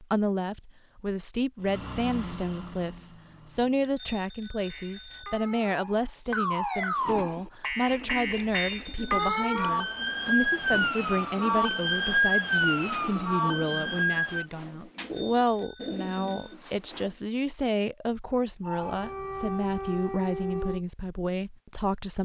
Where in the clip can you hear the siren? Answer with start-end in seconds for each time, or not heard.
4.7-14.4, 18.6-20.8.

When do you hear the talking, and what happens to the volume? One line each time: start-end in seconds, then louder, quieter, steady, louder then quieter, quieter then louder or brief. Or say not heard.
0.0-22.2 steady.